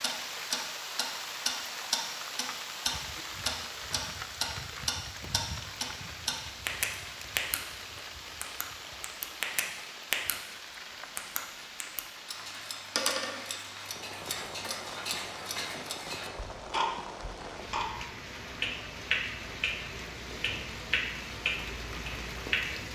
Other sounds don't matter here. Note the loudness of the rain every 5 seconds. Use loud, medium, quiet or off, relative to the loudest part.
loud, loud, medium, loud, loud.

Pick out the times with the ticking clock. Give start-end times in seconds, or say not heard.
0.0-7.6, 8.4-10.3, 11.2-22.9.